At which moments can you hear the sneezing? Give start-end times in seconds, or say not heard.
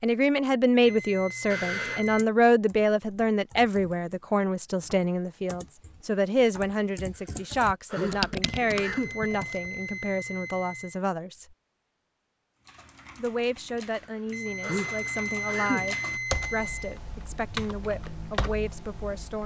1.5-2.0, 7.2-9.2, 13.9-15.8.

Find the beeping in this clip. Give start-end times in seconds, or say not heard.
0.8-2.2, 8.4-11.0, 14.3-16.9.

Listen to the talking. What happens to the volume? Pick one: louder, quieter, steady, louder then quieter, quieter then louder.
quieter.